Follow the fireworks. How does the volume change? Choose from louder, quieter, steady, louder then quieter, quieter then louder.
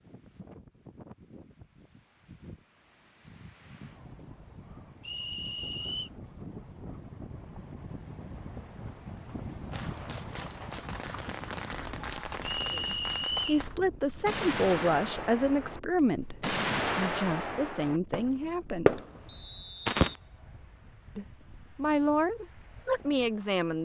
louder.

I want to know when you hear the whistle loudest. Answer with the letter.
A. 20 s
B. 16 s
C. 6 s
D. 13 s
D.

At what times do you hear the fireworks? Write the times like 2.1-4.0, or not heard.
9.7-20.2.